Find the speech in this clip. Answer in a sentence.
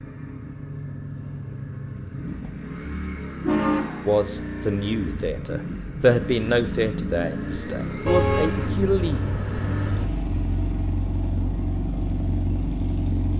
The speech can be heard from 4.0 to 9.2 s.